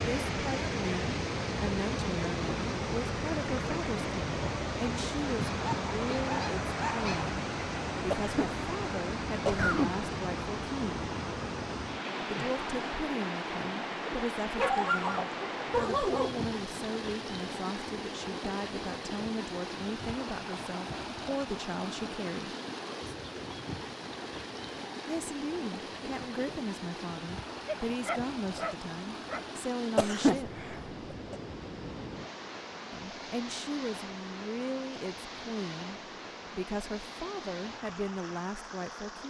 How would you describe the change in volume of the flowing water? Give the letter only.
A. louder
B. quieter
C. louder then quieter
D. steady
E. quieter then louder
B.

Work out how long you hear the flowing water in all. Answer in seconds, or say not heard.
39 s.